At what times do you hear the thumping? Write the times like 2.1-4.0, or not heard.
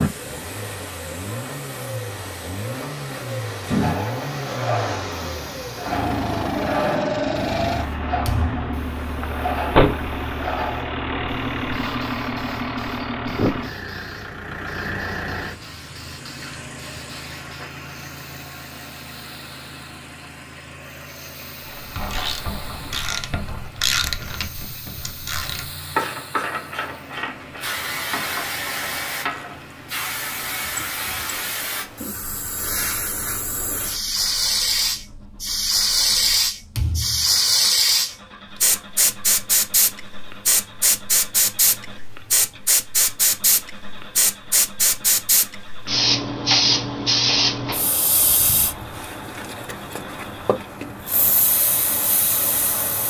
8.2-8.8, 36.8-37.4.